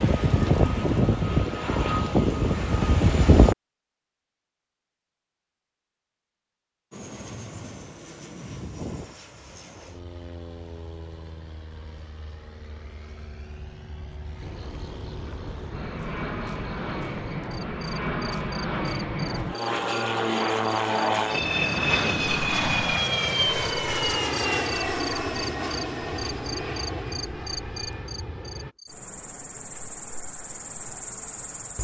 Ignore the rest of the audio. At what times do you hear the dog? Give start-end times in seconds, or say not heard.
not heard.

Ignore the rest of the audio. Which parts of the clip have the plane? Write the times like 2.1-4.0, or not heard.
0.0-3.5, 6.9-28.8.